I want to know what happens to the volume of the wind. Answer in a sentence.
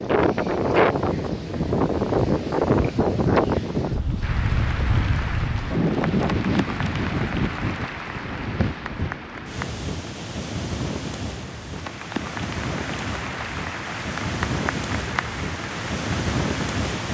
The loudness of the wind goes down.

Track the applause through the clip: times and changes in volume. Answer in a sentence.
You can hear the applause from 4.2 to 17.0 s, getting quieter then louder.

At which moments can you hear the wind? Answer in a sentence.
The wind can be heard from 0.0 to 17.0 s.